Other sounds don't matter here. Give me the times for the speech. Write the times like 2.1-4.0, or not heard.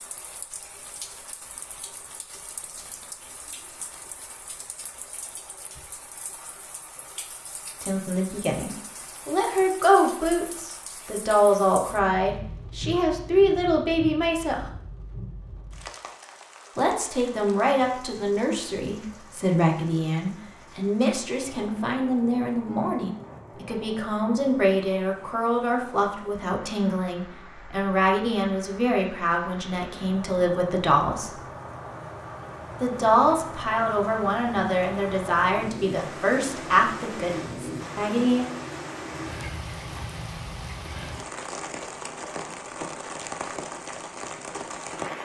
7.8-14.7, 16.8-31.4, 32.8-38.5.